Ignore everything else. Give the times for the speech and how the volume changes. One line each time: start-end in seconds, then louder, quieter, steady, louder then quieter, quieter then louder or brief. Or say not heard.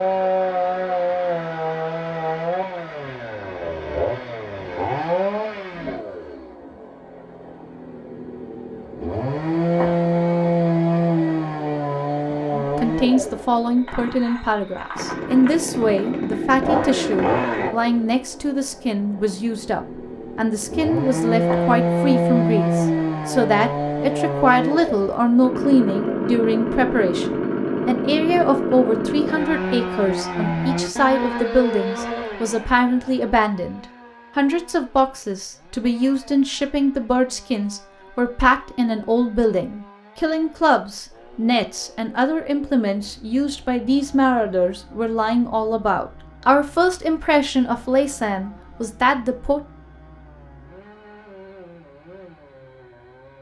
12.5-49.6 steady.